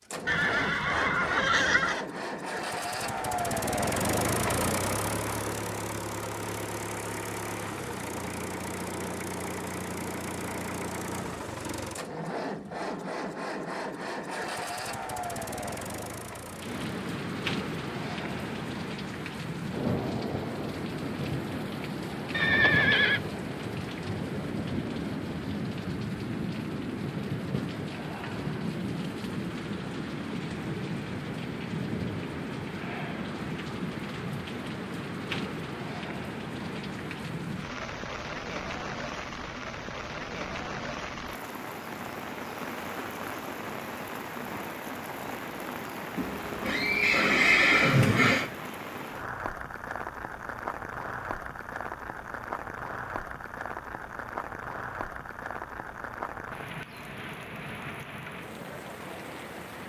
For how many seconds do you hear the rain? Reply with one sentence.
You can hear the rain for 43 seconds altogether.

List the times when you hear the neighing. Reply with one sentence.
The neighing can be heard from 0.2 to 2.0 s, from 22.3 to 23.2 s and from 46.1 to 48.5 s.